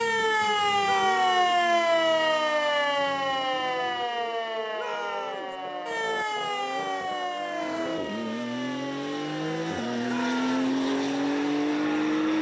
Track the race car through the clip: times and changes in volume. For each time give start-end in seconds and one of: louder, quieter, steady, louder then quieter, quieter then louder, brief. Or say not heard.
0.0-12.3 louder.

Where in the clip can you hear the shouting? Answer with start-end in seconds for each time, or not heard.
0.8-1.6, 4.8-5.5, 10.1-10.7.